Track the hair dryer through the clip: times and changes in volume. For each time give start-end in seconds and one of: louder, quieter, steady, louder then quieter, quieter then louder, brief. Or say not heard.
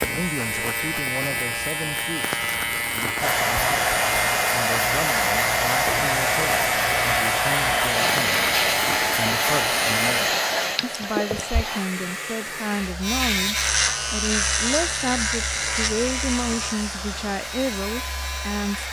3.1-18.8 quieter.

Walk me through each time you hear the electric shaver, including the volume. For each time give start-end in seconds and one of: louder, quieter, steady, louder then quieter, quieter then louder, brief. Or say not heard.
0.0-10.3 steady
13.0-18.8 quieter.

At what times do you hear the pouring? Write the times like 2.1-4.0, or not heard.
10.8-11.7.